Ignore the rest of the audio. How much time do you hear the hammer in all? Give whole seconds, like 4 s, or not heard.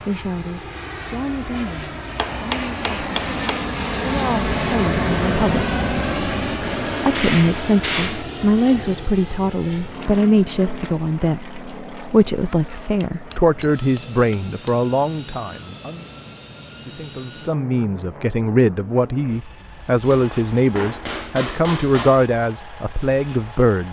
7 s.